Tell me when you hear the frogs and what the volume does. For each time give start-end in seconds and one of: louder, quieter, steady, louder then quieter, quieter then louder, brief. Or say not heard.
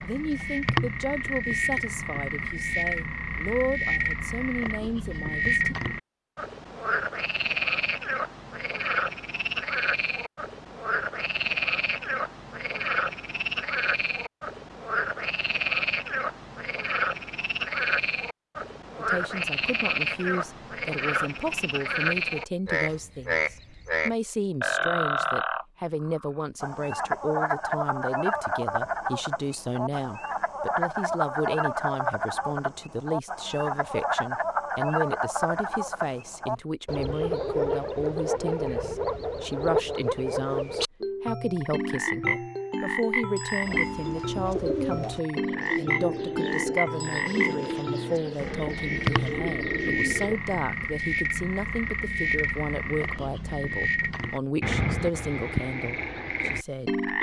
0.0-57.1 steady.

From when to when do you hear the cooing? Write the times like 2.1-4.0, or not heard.
43.6-50.4.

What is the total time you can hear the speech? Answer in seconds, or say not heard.
44 s.